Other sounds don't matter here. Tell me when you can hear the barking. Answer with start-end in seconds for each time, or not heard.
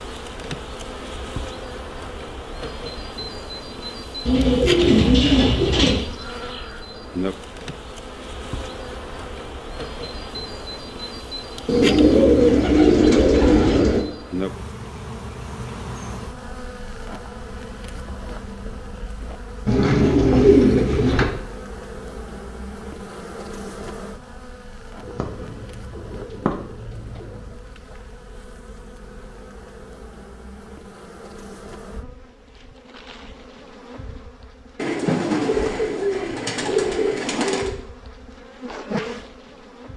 not heard.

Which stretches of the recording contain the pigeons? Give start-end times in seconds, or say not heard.
4.2-6.0, 11.7-14.1, 19.6-21.2, 25.0-27.4, 34.8-37.8.